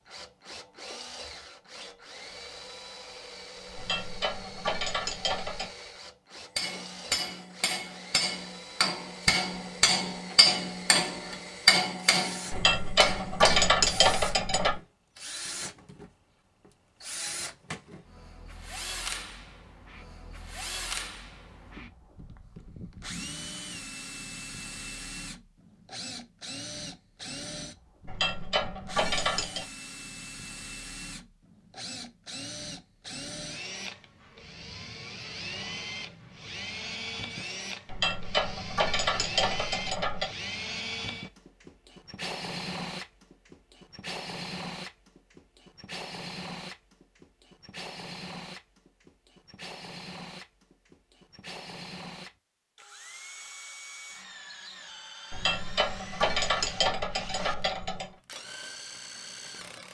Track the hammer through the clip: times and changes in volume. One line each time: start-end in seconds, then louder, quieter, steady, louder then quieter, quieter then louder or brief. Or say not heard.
6.5-14.0 louder then quieter.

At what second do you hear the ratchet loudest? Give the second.
14 s.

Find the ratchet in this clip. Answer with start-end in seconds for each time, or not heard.
3.8-5.7, 12.5-14.8, 28.1-29.6, 37.9-40.3, 55.3-58.1.